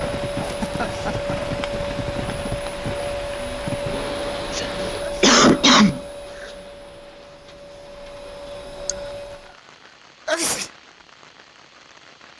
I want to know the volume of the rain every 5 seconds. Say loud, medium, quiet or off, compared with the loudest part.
loud, quiet, quiet.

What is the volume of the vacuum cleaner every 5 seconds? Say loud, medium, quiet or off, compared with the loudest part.
loud, medium, off.